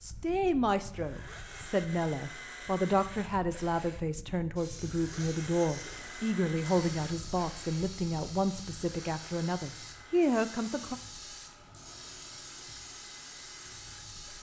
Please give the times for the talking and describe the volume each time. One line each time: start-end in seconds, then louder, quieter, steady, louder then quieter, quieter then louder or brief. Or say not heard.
0.0-10.9 steady.